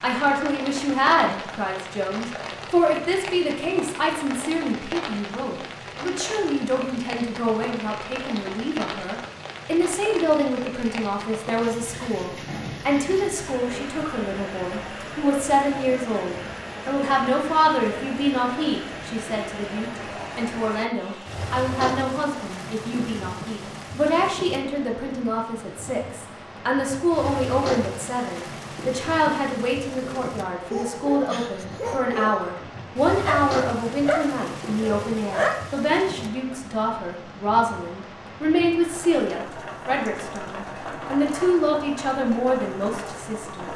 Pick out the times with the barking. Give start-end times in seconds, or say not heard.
30.7-35.6.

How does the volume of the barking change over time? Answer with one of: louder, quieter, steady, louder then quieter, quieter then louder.
louder then quieter.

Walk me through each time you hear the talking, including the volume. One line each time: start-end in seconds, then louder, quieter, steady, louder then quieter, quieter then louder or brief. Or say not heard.
0.0-43.7 steady.